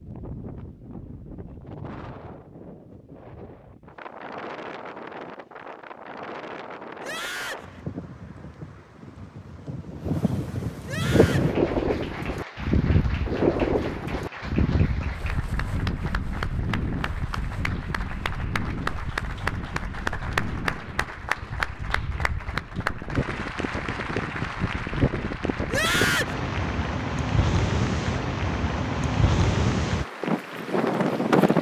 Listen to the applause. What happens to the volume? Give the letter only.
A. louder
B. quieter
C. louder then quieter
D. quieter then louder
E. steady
C.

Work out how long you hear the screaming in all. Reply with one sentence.
You can hear the screaming for 2 seconds altogether.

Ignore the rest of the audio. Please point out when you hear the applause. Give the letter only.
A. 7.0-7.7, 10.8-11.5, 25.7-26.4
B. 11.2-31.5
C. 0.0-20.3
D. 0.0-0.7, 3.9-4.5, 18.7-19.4
B.